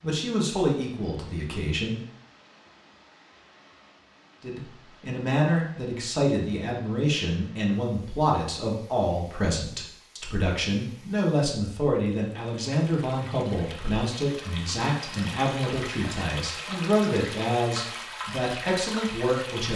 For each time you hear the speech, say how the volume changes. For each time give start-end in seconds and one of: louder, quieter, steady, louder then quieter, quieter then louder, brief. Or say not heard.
0.0-2.0 brief
4.4-19.7 steady.